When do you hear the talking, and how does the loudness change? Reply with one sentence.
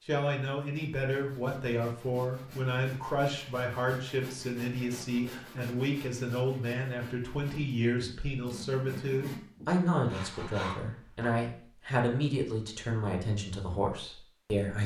The talking can be heard from 0.1 to 14.8 s, at a steady volume.